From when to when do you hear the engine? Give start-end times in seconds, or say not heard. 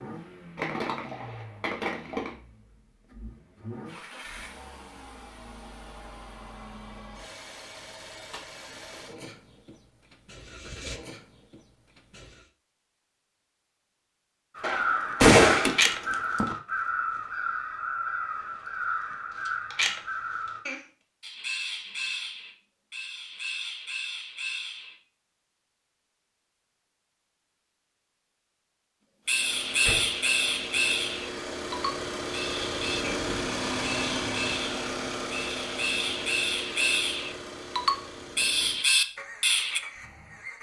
0.0-12.5, 29.2-40.5.